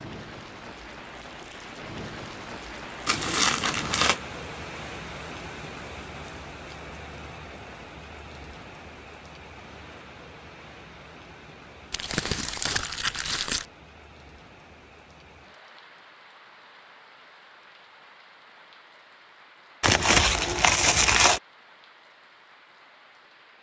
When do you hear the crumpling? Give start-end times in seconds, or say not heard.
3.0-4.2, 11.9-13.7, 19.8-21.4.